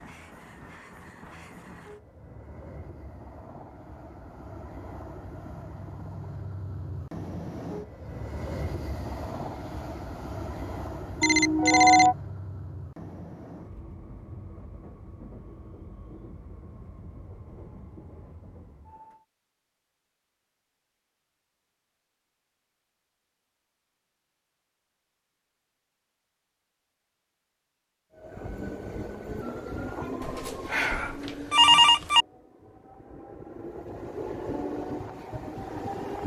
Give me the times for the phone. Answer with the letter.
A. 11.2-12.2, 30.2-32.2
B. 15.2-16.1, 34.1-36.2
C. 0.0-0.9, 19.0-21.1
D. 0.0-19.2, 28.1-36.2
A.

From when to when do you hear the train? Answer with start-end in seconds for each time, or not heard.
0.0-19.2, 28.1-36.2.